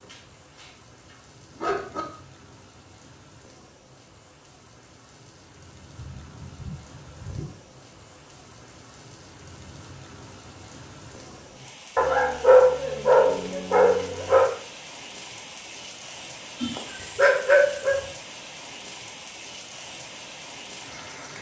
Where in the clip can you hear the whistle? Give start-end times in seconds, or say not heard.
not heard.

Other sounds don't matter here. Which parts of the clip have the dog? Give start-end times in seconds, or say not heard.
0.0-2.0, 6.0-7.5, 11.9-14.5, 16.6-18.0.